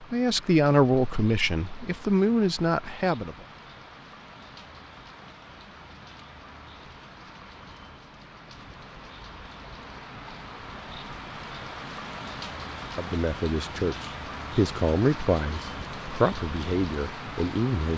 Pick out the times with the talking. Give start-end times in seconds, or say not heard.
0.0-3.4, 12.9-17.9.